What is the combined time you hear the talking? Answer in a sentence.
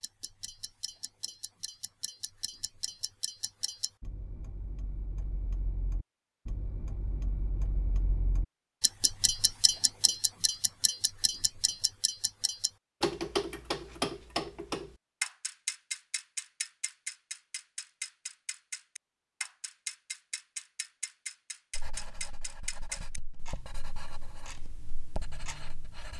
You can't hear the talking here.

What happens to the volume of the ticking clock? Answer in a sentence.
The volume of the ticking clock goes up, then down.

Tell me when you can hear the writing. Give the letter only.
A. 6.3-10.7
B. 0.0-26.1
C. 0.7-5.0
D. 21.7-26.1
D.